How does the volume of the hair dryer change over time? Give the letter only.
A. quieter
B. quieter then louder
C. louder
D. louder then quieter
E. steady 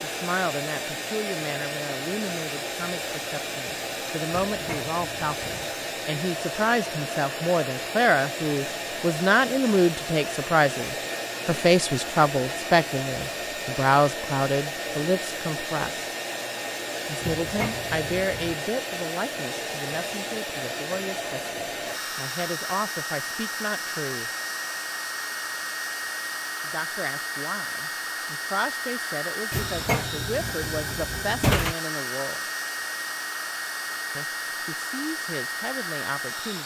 E.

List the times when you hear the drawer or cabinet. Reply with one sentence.
The drawer or cabinet can be heard from 4.3 to 5.5 s, from 17.2 to 18.6 s and from 29.5 to 31.8 s.